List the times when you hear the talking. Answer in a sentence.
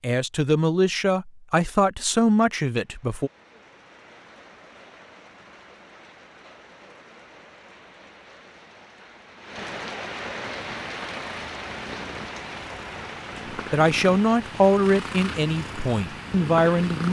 You can hear the talking from 0.0 to 3.3 s and from 13.3 to 17.0 s.